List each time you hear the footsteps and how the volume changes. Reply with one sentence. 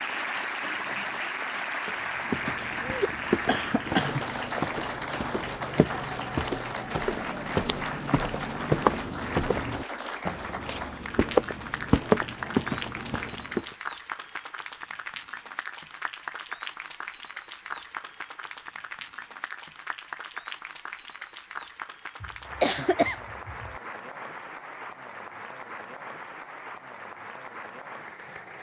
You can hear the footsteps from 1.9 to 13.7 s, getting louder.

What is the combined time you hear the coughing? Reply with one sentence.
The coughing can be heard for 3 seconds in total.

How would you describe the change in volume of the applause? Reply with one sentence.
The volume of the applause goes down.